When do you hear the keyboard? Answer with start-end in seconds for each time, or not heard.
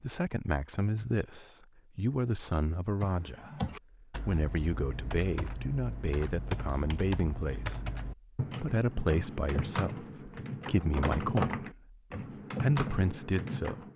3.0-13.9.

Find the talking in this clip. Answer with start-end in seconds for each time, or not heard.
0.0-7.8, 8.5-11.9, 12.6-13.8.